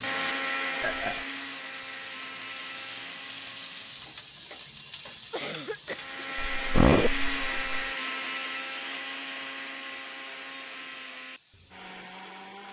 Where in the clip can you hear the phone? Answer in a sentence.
The phone can't be heard in this clip.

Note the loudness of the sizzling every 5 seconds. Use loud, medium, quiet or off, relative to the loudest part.
loud, medium, quiet.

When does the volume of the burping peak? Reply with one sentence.
The loudest moment of the burping is at 7 seconds.